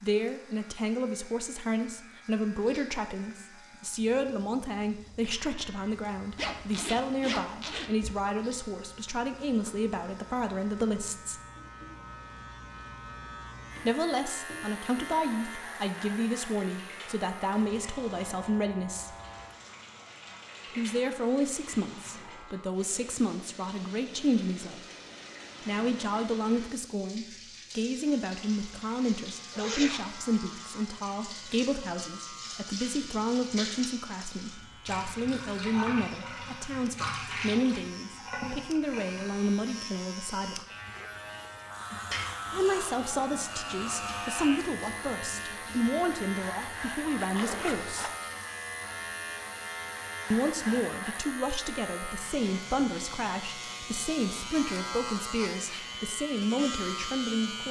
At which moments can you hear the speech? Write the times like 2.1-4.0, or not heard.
0.0-11.4, 13.8-19.1, 20.8-24.8, 25.6-40.6, 42.5-48.1, 50.3-57.6.